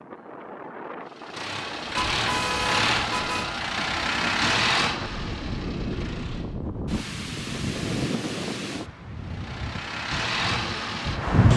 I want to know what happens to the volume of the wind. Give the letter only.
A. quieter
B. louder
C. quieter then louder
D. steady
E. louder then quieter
E.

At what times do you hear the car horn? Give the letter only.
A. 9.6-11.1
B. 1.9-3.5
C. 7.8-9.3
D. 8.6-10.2
B.